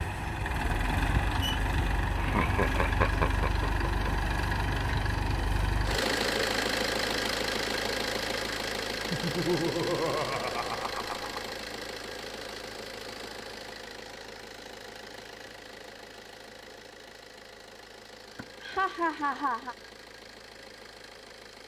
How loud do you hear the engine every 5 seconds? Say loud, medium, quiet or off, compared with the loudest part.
loud, loud, medium, quiet, quiet.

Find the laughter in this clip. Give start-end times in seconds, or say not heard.
2.1-4.1, 9.1-11.6, 18.4-19.8.